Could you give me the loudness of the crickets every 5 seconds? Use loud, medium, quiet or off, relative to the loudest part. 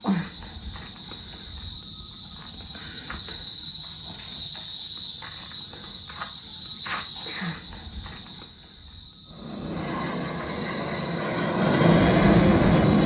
loud, loud, medium.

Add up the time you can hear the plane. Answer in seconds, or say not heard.
4 s.